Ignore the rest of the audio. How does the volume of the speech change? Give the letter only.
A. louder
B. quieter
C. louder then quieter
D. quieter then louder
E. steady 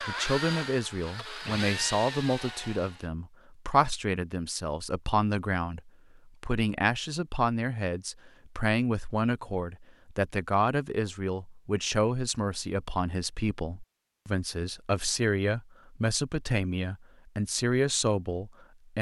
E.